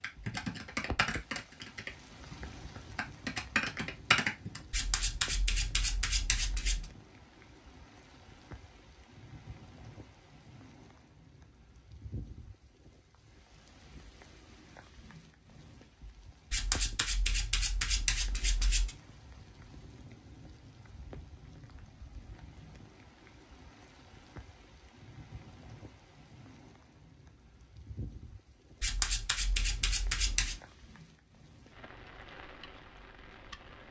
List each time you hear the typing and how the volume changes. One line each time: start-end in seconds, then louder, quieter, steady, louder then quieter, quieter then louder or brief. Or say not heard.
0.0-4.6 quieter then louder.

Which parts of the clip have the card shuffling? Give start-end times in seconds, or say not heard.
4.7-6.8, 16.5-18.9, 28.8-30.6.